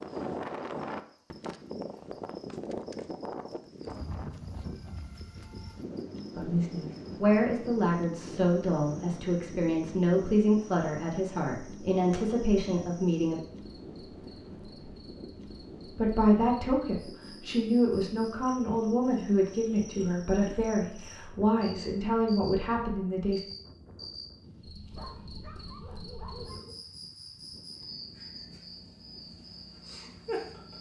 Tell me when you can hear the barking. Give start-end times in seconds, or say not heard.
24.9-26.8.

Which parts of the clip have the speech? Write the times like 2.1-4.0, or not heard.
6.3-13.3, 15.9-23.4.